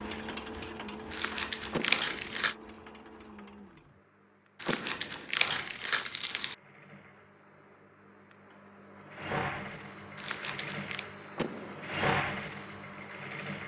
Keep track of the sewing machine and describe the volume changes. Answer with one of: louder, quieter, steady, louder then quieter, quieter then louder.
quieter then louder.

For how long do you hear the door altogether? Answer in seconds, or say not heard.
2 s.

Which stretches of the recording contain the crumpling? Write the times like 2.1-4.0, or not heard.
1.1-2.5, 4.6-6.5, 10.2-11.1.